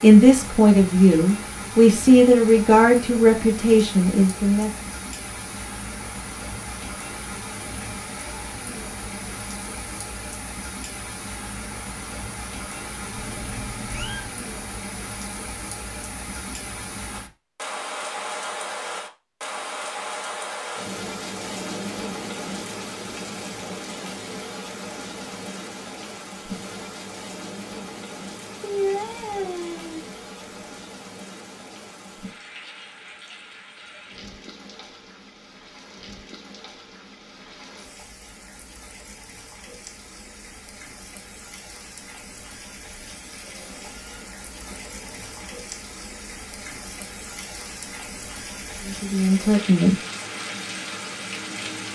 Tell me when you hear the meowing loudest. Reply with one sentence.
The volume of the meowing peaks at 29 seconds.